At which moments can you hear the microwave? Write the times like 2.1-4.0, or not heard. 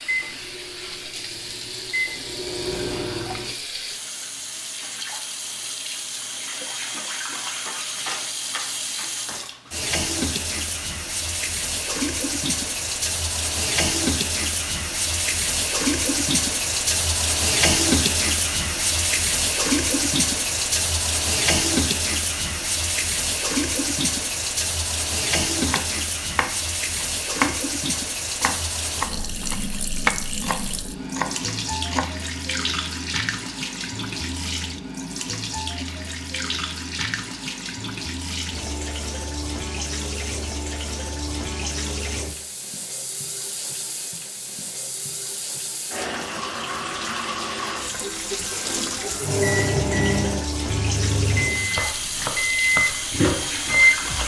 0.0-3.5, 49.2-54.2.